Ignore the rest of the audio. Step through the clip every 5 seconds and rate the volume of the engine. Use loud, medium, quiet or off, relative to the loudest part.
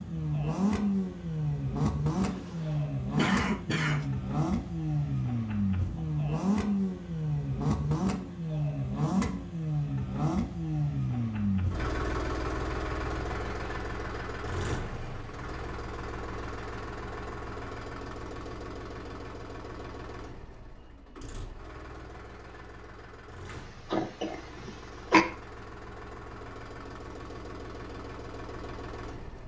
loud, loud, loud, medium, quiet, quiet.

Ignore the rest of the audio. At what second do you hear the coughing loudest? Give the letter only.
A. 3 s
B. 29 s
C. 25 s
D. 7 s
C.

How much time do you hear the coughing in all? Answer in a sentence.
The coughing can be heard for 3 seconds in total.